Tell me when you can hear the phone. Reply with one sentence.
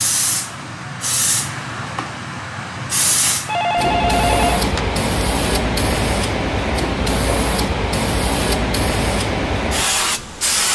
The phone can be heard from 3.5 to 5.0 s.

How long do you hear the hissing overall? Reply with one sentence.
The hissing can be heard for 11 seconds in total.